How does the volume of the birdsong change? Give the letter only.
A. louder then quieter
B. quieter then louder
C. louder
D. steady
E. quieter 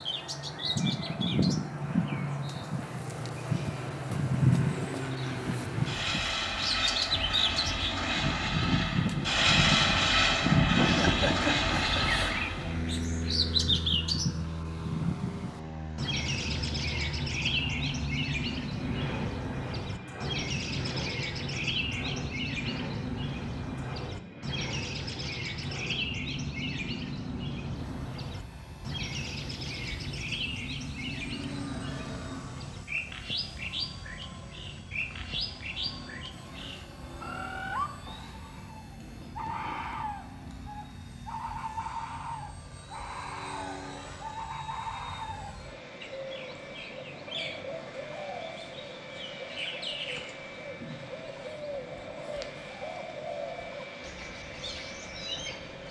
E.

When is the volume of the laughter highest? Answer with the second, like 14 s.
11 s.